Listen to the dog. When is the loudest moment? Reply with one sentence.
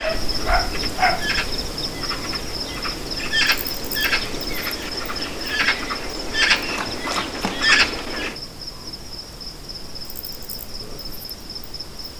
The volume of the dog peaks at 1 second.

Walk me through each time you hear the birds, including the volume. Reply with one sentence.
The birds can be heard from 0.0 to 8.3 s, getting louder.